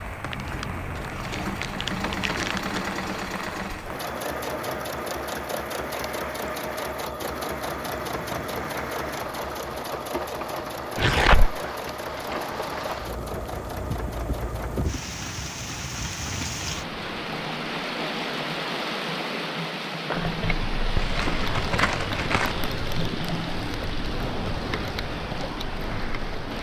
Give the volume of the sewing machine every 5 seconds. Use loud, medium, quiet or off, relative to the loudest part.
loud, loud, loud, off, off, off.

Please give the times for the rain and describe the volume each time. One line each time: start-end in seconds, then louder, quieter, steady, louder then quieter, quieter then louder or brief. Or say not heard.
0.0-26.5 louder.